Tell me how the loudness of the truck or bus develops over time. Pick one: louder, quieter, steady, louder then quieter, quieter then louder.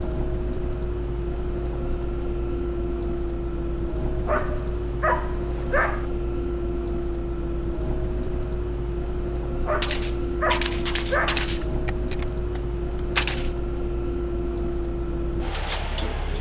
steady.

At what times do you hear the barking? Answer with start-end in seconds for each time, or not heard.
4.2-6.0, 9.7-11.4.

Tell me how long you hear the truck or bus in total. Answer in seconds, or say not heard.
16 s.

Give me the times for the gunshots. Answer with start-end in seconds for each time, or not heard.
9.7-13.5.